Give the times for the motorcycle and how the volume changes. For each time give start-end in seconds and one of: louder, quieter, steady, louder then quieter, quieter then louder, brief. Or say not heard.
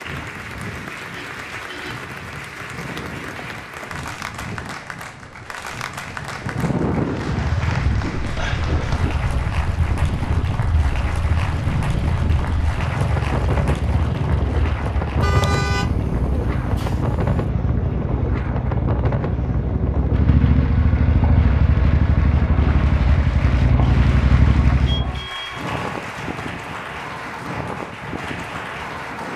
7.3-25.2 louder.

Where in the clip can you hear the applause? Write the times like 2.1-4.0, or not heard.
0.0-29.3.